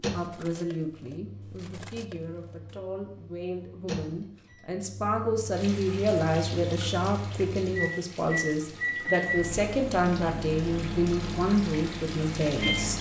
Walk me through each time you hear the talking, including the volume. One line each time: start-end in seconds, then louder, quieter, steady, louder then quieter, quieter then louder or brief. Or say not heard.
0.1-12.9 louder.